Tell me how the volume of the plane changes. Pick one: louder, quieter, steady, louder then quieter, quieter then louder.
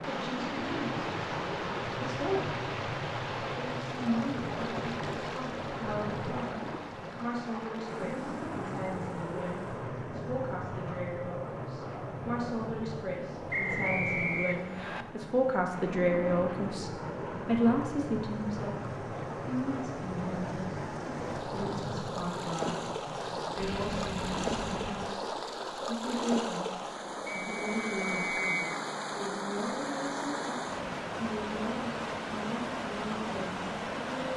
steady.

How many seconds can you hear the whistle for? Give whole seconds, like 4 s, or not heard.
3 s.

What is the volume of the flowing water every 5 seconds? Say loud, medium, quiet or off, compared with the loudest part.
loud, medium, medium, medium, loud, loud, loud.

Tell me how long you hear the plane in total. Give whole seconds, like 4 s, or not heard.
25 s.